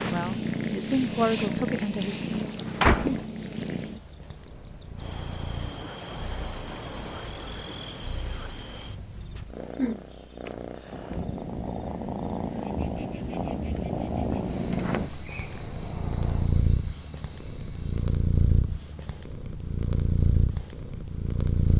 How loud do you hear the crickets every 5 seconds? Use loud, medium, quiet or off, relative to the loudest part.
medium, loud, medium, medium, off.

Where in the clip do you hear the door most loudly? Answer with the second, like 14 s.
3 s.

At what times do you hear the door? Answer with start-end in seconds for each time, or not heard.
2.3-3.2, 10.4-11.2, 14.7-16.5.